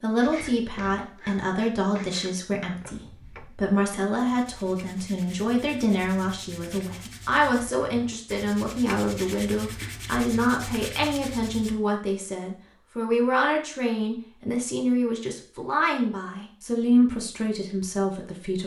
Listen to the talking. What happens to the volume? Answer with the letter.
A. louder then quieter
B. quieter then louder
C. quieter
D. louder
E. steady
E.